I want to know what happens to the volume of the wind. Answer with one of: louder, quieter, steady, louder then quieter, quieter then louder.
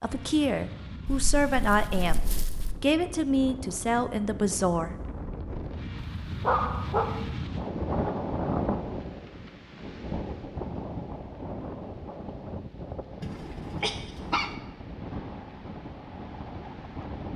louder then quieter.